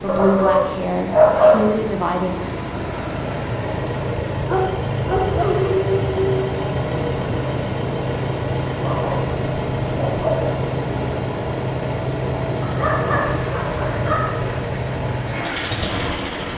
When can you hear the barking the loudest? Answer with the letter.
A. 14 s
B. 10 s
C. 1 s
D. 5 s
C.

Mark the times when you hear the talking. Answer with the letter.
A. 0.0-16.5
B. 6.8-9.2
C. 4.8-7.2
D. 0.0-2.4
D.